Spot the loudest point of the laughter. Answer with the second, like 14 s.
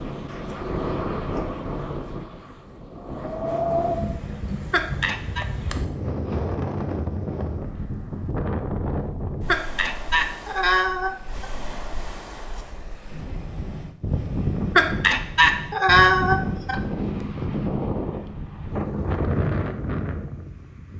16 s.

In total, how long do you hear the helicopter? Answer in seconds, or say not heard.
not heard.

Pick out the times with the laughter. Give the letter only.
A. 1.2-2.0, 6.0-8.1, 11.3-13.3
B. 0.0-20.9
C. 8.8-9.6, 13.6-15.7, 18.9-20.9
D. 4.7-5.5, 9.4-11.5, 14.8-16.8
D.